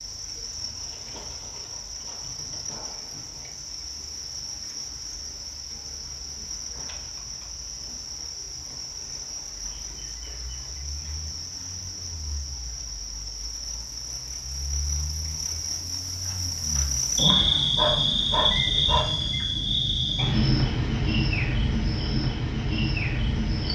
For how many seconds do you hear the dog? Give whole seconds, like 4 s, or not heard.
2 s.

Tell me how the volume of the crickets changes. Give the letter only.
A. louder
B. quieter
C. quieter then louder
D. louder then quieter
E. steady
A.